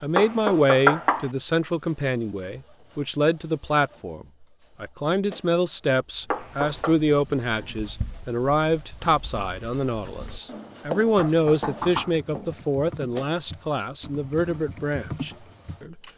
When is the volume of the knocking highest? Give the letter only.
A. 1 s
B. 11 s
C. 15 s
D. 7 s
A.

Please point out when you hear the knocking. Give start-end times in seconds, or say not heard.
0.1-1.3, 6.3-7.0, 11.2-12.2.